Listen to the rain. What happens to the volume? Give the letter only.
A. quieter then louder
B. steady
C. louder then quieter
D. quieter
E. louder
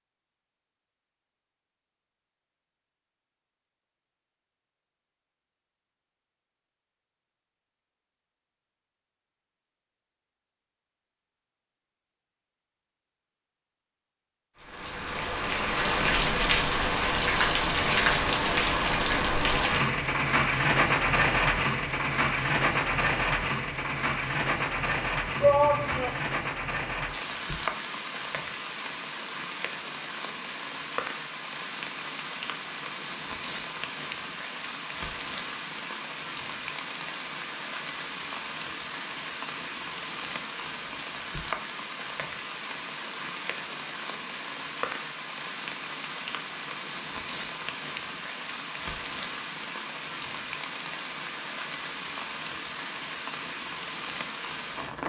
D.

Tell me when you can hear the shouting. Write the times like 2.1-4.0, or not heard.
25.4-26.2.